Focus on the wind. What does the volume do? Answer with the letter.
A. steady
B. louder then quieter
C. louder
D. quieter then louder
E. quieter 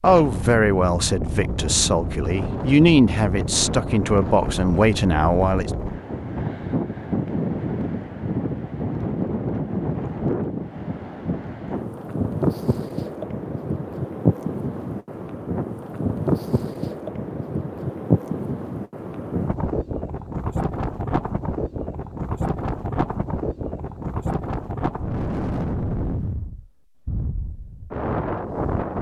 A.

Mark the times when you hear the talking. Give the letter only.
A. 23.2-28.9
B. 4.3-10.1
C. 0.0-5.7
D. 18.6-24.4
C.